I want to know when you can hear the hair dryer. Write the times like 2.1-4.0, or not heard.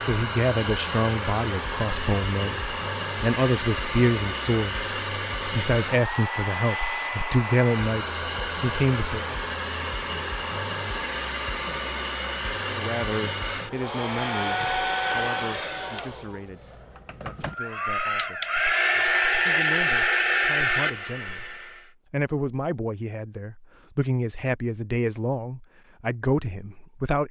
0.0-21.8.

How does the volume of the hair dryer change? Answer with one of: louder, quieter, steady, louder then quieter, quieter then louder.
louder.